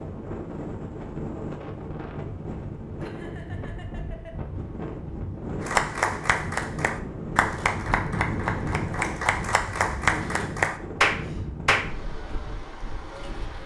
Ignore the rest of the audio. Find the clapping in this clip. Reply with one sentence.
The clapping can be heard from 5.6 to 11.9 s.